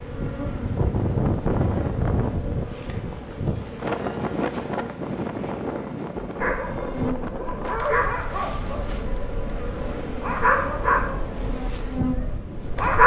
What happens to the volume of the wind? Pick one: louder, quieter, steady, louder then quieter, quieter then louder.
quieter.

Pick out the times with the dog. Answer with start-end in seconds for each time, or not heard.
6.4-13.0.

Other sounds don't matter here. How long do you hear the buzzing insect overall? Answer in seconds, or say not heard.
13 s.